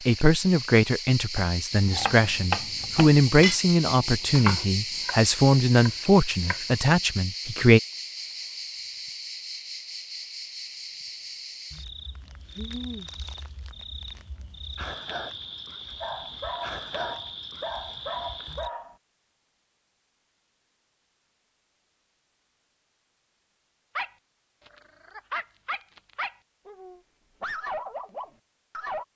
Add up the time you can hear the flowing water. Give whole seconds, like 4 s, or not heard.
not heard.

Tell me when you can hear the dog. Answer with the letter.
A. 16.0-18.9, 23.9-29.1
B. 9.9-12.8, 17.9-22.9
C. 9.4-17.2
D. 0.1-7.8
A.